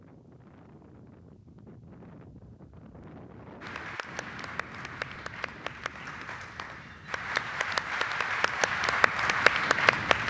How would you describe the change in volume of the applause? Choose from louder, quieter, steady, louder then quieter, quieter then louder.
louder.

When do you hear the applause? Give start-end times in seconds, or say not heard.
3.6-10.2.